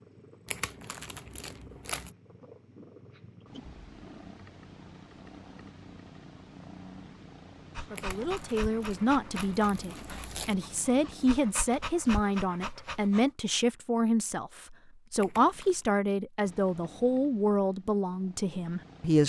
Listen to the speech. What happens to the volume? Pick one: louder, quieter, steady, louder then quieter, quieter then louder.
steady.